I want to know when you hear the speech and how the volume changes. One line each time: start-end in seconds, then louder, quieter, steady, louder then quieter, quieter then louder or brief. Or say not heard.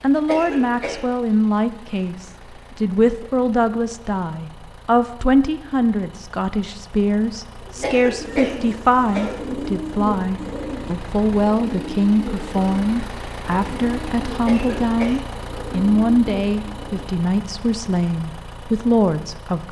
0.0-19.6 steady.